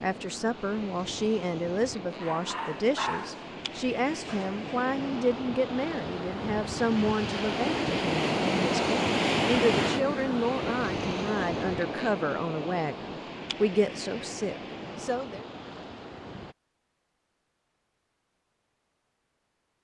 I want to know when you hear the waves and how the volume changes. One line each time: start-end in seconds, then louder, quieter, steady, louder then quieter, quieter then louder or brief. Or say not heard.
0.0-16.6 louder then quieter.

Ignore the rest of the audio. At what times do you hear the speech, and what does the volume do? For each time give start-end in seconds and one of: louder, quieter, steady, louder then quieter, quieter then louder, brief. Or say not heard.
0.0-15.4 steady.